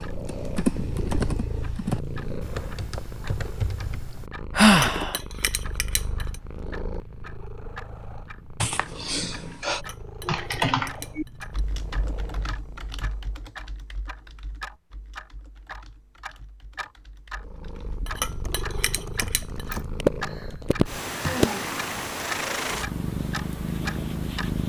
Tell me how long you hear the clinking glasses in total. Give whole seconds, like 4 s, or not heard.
5 s.